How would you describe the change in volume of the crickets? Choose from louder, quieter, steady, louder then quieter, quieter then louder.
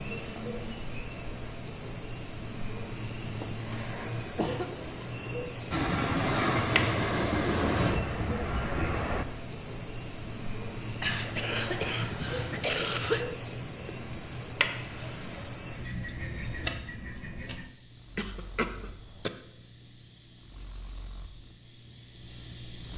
steady.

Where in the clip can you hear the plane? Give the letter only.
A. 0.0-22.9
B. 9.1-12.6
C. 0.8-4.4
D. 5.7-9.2
D.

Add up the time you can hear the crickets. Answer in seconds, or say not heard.
23 s.